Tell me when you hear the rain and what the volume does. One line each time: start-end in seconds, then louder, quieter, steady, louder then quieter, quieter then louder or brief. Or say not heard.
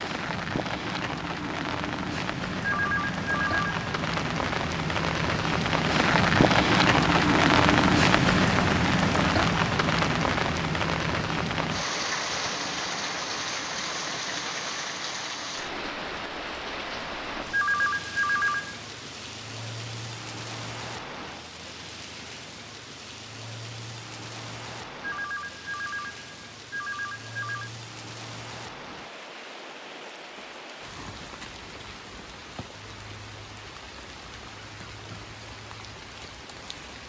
0.0-37.0 quieter.